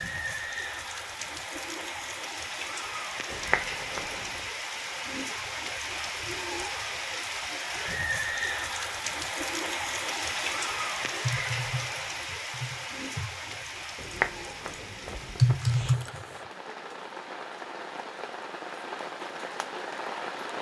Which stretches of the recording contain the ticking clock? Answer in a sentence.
The ticking clock can't be heard in this clip.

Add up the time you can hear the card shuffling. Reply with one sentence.
You can hear the card shuffling for 3 seconds altogether.